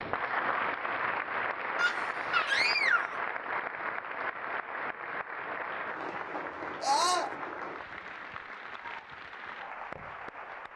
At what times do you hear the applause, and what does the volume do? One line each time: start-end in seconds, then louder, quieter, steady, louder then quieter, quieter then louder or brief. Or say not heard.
0.0-10.7 quieter.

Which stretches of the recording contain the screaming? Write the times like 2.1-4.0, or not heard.
1.8-3.2, 6.8-7.3.